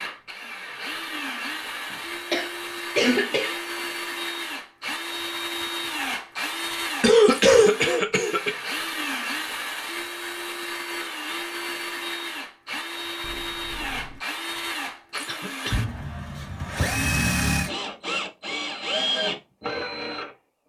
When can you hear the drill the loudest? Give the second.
17 s.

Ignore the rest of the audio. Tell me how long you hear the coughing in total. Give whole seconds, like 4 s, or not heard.
3 s.